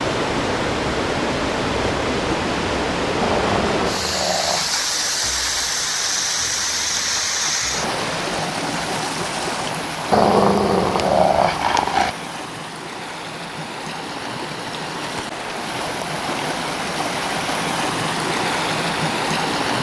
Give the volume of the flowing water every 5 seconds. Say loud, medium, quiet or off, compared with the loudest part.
loud, loud, medium, loud.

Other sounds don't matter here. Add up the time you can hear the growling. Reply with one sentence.
You can hear the growling for 4 seconds altogether.